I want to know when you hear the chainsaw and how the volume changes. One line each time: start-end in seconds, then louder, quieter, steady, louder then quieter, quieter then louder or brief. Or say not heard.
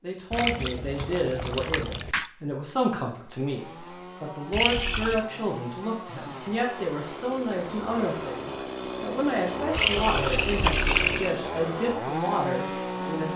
3.1-13.3 louder.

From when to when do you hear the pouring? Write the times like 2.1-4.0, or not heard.
0.3-2.3, 4.5-5.2, 9.7-11.3.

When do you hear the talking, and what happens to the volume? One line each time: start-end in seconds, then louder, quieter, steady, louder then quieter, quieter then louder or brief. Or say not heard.
0.0-13.3 steady.